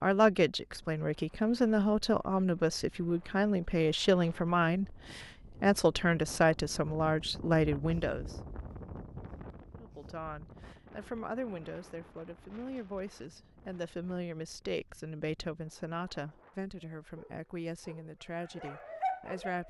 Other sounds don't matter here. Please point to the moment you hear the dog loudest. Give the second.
19 s.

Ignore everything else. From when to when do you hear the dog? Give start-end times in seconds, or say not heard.
17.0-19.6.